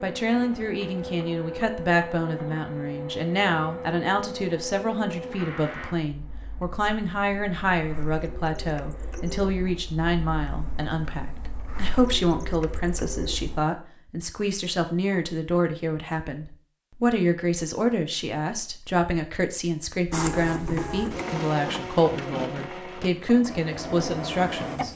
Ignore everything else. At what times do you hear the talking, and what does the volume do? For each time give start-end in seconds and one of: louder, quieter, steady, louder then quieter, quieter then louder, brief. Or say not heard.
0.0-24.9 steady.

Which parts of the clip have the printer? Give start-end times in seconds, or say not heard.
0.0-13.7, 20.1-24.9.